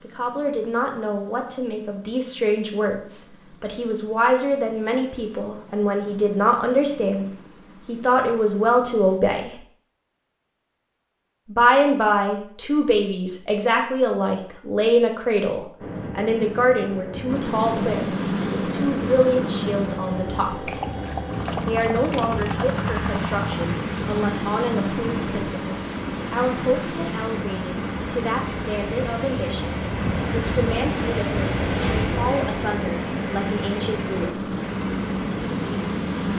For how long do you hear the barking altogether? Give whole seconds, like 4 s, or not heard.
2 s.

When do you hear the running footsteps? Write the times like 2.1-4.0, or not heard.
not heard.